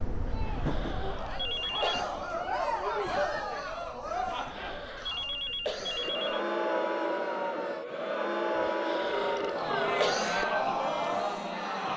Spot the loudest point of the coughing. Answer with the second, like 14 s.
10 s.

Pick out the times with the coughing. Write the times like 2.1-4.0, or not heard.
0.2-2.2, 4.3-6.1, 8.7-10.4.